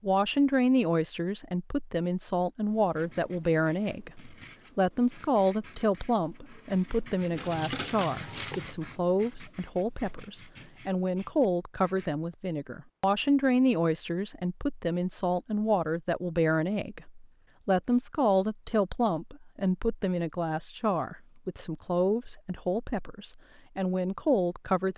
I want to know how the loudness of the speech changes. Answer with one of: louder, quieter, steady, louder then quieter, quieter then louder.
steady.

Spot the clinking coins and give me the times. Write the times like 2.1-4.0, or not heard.
7.3-8.8.